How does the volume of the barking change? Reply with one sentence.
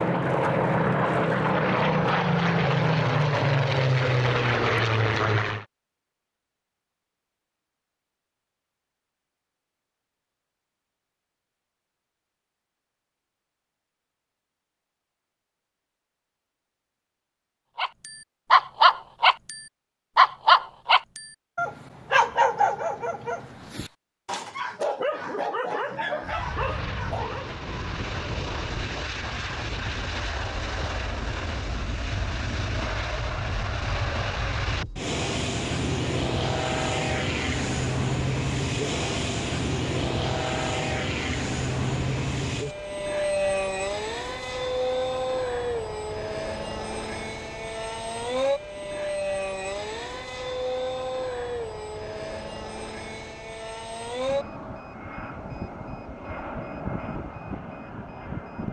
The volume of the barking goes down.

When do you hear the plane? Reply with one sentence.
You can hear the plane from 0.0 to 5.7 s and from 26.2 to 58.6 s.